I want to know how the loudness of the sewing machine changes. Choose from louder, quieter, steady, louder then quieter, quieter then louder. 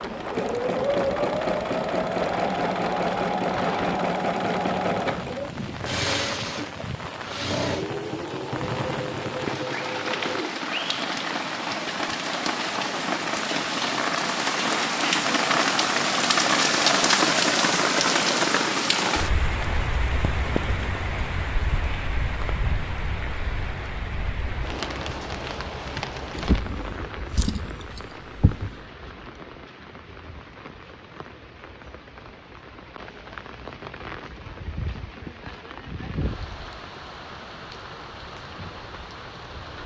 quieter.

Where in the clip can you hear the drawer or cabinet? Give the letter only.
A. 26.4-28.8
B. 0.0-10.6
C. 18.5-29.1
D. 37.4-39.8
A.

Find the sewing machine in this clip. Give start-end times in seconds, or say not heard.
0.0-10.6.